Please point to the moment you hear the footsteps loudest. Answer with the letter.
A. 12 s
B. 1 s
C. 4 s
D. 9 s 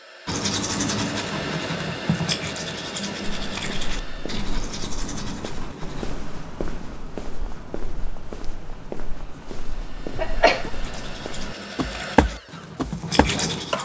A.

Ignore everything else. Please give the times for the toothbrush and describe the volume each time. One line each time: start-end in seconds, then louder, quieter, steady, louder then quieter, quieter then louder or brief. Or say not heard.
0.2-6.0 quieter
10.8-13.7 brief.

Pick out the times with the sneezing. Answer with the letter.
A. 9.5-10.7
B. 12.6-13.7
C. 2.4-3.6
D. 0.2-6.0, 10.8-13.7
A.